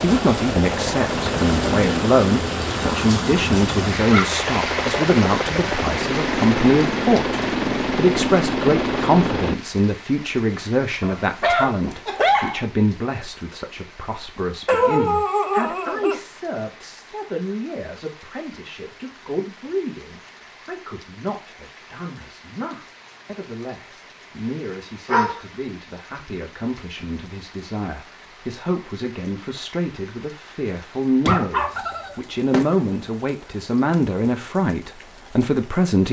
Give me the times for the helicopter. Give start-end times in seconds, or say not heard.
0.0-9.6.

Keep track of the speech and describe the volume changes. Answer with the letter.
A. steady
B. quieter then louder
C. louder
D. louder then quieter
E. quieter
B.